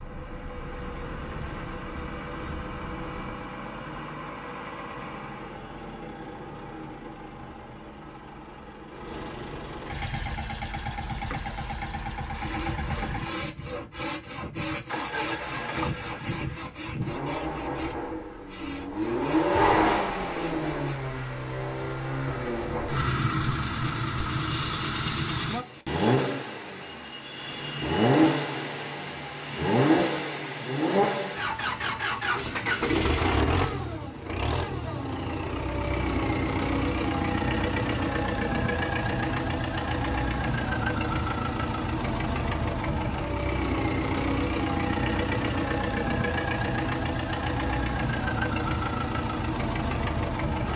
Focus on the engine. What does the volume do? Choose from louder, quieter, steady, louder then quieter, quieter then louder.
louder.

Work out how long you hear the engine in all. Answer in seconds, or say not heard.
51 s.